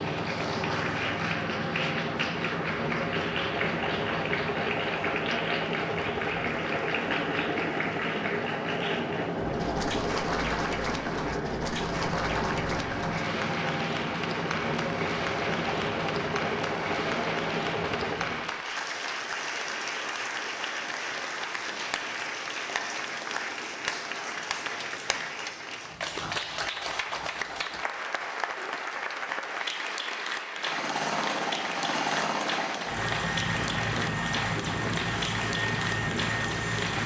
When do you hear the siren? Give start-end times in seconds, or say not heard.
not heard.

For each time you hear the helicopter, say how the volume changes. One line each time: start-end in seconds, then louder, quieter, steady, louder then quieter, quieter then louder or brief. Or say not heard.
0.0-18.6 steady
30.5-37.0 steady.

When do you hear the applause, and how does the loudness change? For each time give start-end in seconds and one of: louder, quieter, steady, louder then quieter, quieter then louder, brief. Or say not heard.
0.0-37.0 steady.